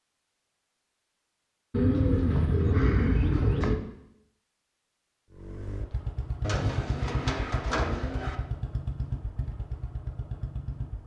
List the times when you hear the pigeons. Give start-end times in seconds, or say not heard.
1.7-3.8, 6.4-8.3.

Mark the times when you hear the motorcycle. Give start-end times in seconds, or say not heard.
5.3-11.0.